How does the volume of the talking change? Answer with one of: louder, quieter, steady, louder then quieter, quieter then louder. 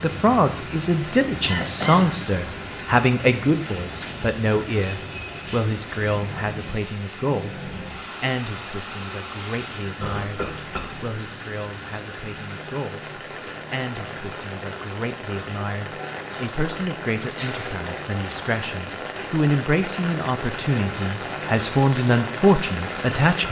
quieter then louder.